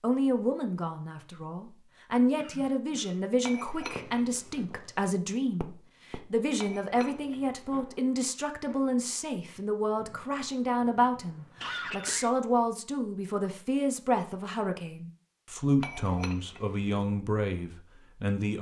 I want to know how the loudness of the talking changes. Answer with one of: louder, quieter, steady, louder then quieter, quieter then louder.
steady.